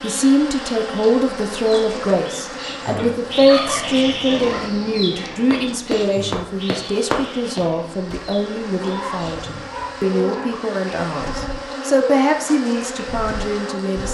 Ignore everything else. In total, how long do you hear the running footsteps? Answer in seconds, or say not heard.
3 s.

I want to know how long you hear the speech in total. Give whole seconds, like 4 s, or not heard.
14 s.